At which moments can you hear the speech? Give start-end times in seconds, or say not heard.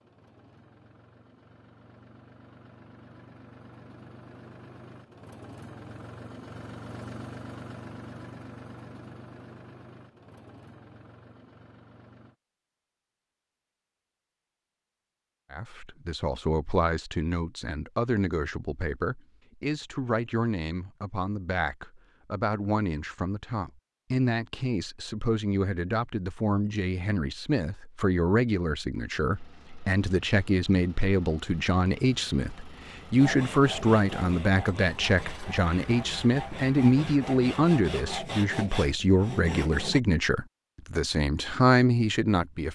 15.5-42.7.